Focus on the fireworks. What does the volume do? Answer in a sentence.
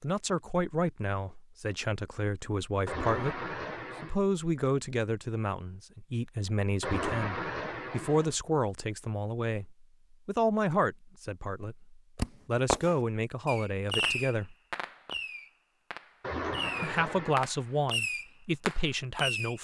The volume of the fireworks goes down, then up.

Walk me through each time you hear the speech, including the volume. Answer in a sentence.
You can hear the speech from 0.0 to 14.6 s, at a steady volume; and briefly from 16.8 to 19.5 s.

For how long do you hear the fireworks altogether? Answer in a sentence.
You can hear the fireworks for 7 seconds altogether.